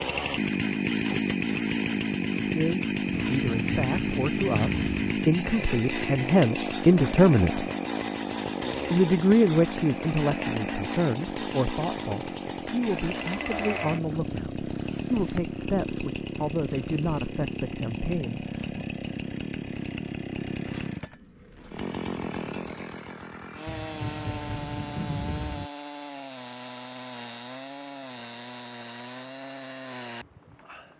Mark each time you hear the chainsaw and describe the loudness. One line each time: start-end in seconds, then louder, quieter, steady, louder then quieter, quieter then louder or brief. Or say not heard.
0.0-30.9 quieter.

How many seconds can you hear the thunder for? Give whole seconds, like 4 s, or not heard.
4 s.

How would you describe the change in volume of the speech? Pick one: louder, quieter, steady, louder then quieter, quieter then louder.
louder then quieter.